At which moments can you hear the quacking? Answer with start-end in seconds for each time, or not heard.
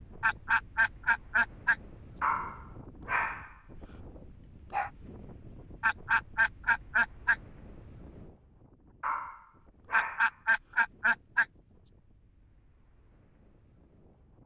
0.2-2.2, 5.8-7.3, 9.9-11.9.